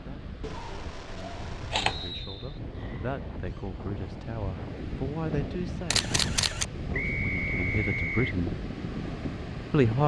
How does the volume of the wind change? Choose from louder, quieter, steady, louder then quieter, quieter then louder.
louder.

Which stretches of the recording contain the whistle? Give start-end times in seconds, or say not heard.
1.9-2.6, 6.9-8.4.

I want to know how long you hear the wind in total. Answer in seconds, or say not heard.
10 s.